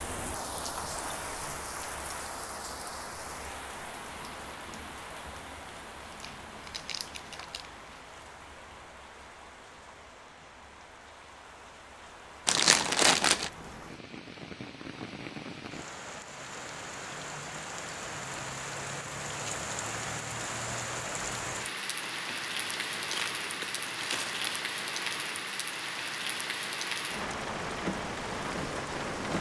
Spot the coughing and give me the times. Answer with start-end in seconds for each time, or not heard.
not heard.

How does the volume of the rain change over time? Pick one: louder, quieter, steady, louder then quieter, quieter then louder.
quieter then louder.